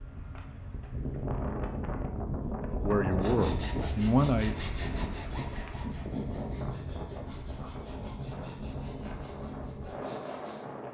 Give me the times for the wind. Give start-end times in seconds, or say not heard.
0.0-10.9.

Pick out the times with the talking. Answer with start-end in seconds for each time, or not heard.
2.7-4.5.